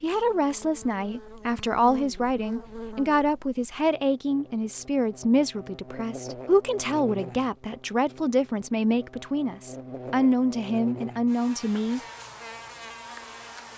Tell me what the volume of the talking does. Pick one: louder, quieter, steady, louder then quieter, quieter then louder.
steady.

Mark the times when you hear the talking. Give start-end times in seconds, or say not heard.
0.0-12.0.